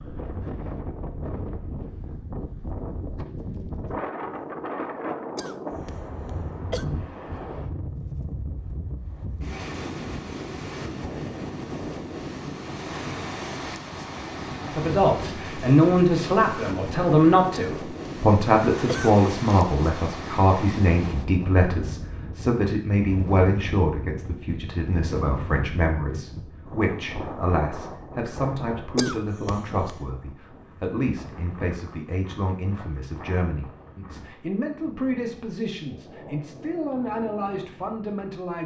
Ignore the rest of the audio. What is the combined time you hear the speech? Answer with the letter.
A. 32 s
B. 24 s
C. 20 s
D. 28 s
B.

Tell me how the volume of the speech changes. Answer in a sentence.
The loudness of the speech goes down.